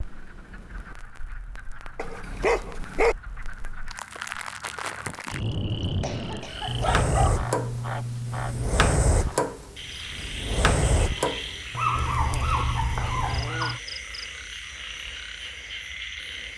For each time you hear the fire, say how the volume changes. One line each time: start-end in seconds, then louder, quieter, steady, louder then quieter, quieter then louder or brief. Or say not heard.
0.0-13.4 louder.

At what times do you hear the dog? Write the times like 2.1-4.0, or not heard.
1.9-3.1, 6.7-8.7, 11.7-13.8.